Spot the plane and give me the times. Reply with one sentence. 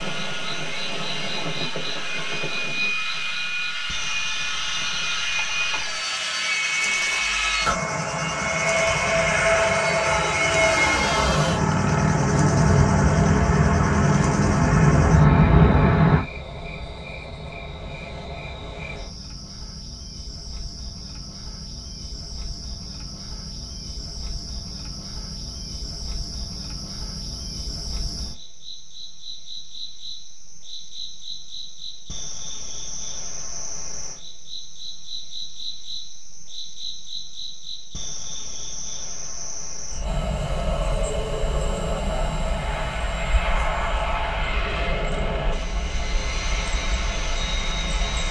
You can hear the plane from 0.0 to 16.2 s and from 40.0 to 48.2 s.